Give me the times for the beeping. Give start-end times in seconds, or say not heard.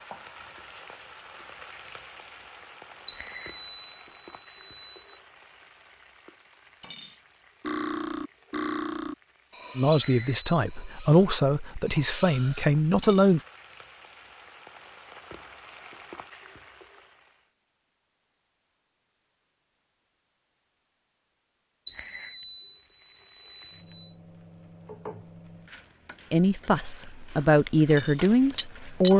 3.0-5.2, 9.9-10.6, 21.9-24.1.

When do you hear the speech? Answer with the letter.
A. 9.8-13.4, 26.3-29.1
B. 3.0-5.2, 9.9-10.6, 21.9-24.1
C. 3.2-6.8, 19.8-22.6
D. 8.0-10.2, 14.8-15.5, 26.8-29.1
A.